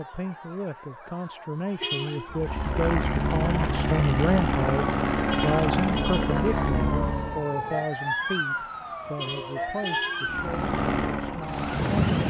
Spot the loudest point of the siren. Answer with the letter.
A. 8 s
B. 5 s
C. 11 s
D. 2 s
A.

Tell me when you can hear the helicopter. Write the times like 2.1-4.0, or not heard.
2.3-7.5, 10.2-12.2.